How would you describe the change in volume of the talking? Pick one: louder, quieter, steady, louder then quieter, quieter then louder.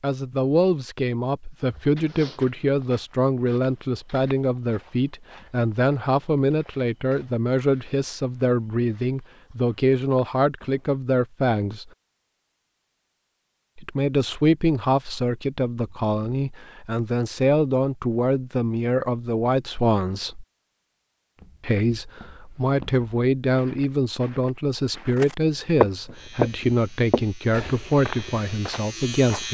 steady.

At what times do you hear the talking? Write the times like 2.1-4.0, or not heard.
0.0-11.9, 13.8-20.4, 21.6-29.4.